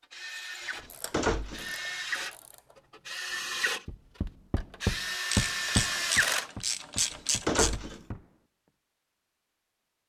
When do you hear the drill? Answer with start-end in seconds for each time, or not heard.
0.0-6.5.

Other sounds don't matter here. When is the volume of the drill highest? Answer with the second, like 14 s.
6 s.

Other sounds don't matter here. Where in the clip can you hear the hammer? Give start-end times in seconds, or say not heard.
3.9-8.3.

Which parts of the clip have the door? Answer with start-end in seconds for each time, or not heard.
0.7-1.7, 7.0-8.1.